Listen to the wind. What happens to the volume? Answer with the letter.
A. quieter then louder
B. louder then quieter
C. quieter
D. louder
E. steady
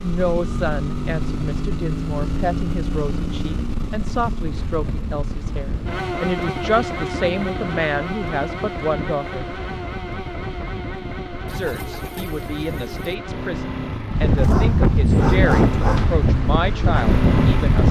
D.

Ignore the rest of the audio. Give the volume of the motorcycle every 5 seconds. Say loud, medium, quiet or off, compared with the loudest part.
loud, loud, medium, loud.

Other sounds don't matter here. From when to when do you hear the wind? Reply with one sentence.
The wind can be heard from 4.5 to 17.8 s.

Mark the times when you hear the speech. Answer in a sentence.
The speech can be heard from 0.0 to 9.4 s and from 11.4 to 17.8 s.